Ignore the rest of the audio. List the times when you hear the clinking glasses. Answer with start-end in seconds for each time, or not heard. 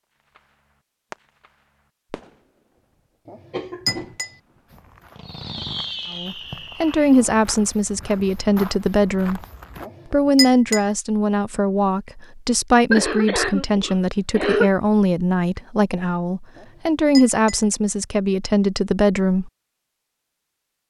3.2-4.3, 9.8-10.8, 16.6-17.6.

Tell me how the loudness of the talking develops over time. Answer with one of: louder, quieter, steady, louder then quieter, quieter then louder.
steady.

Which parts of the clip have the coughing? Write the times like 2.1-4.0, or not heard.
3.5-4.2, 12.9-14.7.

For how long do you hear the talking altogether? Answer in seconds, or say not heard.
13 s.